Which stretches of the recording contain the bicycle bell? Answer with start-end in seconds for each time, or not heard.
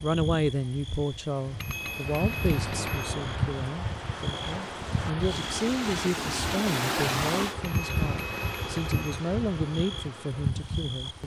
1.6-3.1, 7.6-9.2.